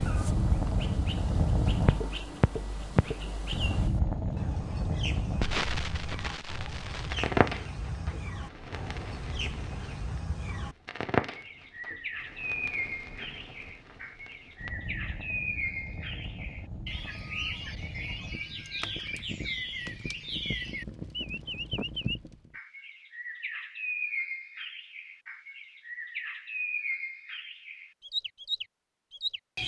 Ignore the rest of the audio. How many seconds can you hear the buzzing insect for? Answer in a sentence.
You can't hear the buzzing insect here.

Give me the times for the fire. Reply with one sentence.
The fire can be heard from 0.0 to 22.6 s.